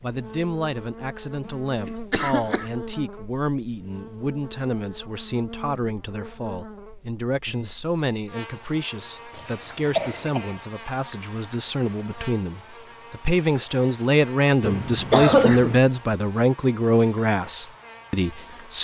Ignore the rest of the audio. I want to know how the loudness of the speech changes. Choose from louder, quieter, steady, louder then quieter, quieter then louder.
louder.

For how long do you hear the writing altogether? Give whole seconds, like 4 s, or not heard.
not heard.